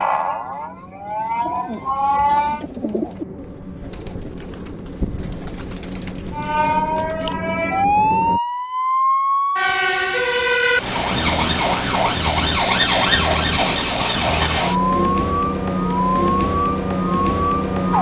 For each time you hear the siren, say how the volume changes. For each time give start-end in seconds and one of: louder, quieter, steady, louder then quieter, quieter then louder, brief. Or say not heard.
0.0-2.6 brief
6.3-17.9 steady.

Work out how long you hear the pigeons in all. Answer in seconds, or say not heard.
6 s.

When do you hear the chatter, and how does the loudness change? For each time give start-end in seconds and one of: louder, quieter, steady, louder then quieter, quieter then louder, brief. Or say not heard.
not heard.